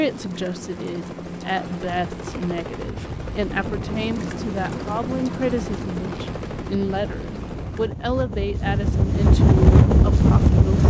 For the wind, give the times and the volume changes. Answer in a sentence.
You can hear the wind from 3.5 to 10.8 s, getting louder.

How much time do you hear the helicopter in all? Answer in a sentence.
The helicopter can be heard for 8 seconds in total.